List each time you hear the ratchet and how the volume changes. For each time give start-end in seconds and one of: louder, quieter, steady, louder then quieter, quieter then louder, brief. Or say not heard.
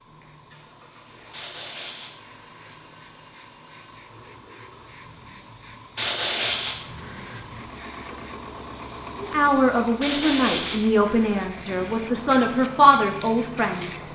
not heard.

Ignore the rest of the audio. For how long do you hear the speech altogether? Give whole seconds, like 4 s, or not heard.
5 s.